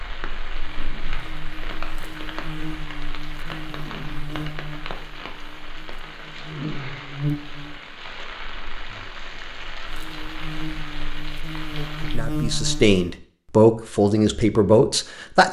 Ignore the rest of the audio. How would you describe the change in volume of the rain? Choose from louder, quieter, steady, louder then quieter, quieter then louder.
steady.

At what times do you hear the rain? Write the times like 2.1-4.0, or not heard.
0.0-12.2.